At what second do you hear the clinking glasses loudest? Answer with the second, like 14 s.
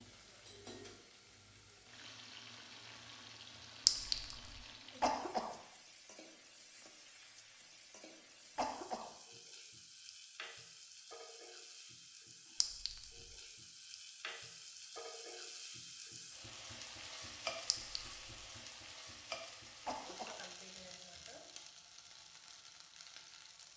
4 s.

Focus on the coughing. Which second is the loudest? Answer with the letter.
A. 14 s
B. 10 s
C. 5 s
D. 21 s
C.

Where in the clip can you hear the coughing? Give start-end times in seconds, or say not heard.
5.0-5.5, 8.6-9.1, 19.9-20.4.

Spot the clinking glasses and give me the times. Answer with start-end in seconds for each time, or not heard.
3.9-4.5, 12.6-13.3, 17.7-18.1.